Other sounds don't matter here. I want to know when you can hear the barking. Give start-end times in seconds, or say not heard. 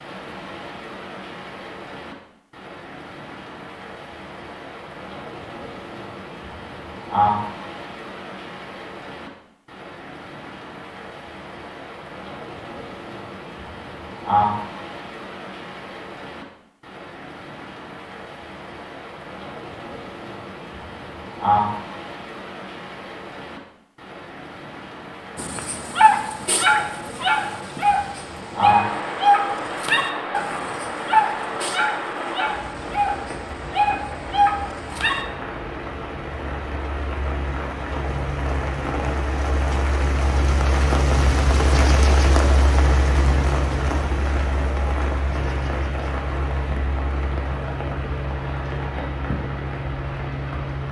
25.4-35.2.